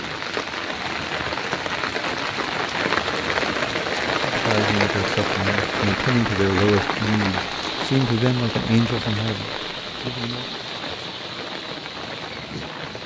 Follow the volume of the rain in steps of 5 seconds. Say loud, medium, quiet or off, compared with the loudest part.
loud, loud, medium.